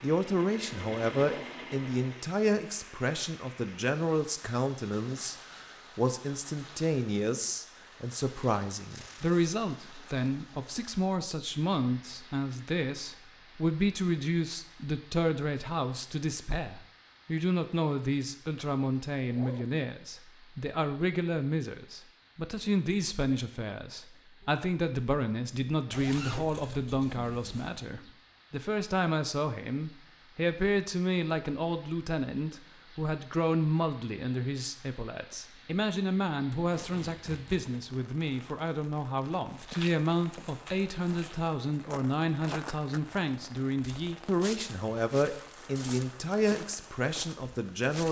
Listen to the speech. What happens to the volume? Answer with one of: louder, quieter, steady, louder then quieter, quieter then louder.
steady.